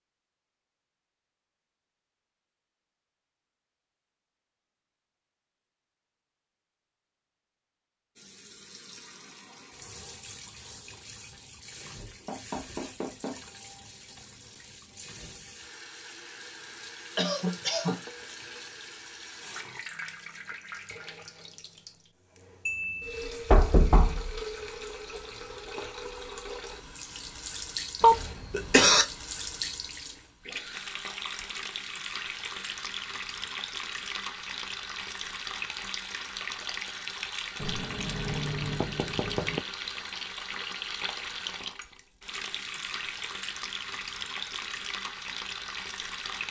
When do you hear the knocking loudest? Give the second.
24 s.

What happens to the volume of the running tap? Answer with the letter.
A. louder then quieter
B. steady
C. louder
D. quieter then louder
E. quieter
C.